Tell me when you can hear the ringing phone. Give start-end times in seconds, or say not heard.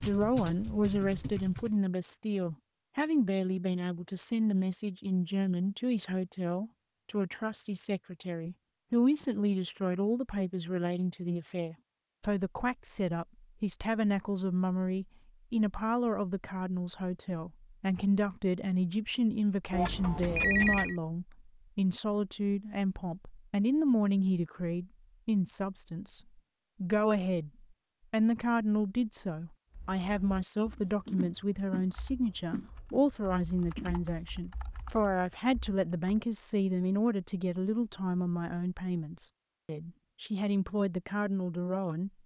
19.7-20.9.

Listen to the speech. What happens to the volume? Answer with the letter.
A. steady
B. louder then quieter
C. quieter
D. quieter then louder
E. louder
A.